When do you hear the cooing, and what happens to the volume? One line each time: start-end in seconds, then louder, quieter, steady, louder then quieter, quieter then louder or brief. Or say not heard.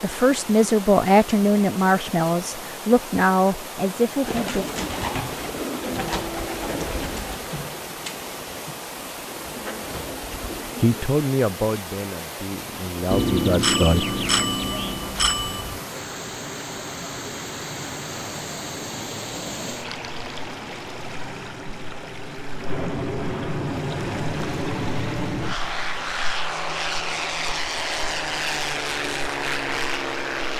4.2-11.1 quieter then louder.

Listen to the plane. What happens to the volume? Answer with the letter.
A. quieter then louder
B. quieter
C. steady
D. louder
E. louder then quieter
D.